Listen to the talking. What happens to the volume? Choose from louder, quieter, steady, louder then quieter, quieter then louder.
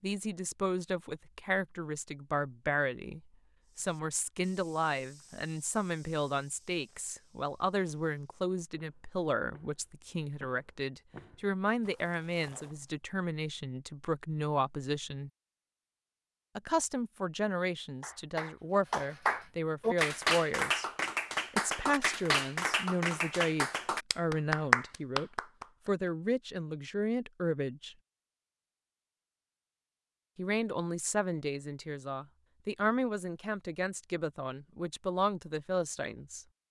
steady.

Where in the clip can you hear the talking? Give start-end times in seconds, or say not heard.
0.0-15.3, 16.6-20.9, 21.5-27.9, 30.4-36.5.